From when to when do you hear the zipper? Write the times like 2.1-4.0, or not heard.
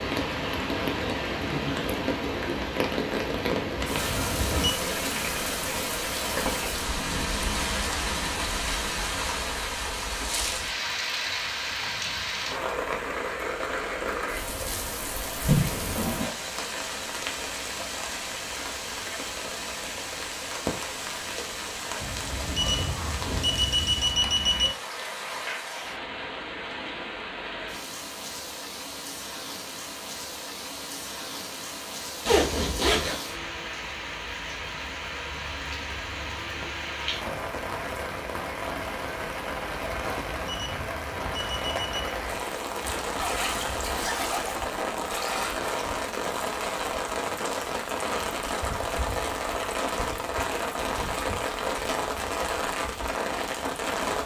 15.4-16.3, 32.2-33.2, 42.9-44.3.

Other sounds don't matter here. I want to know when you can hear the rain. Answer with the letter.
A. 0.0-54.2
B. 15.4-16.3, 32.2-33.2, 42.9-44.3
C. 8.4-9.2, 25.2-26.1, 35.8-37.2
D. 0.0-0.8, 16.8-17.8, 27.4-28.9
A.